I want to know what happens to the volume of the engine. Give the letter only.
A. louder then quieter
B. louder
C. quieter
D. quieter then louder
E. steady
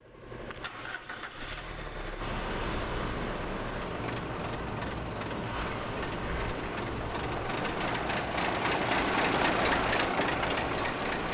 B.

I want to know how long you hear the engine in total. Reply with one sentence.
The engine can be heard for 11 seconds in total.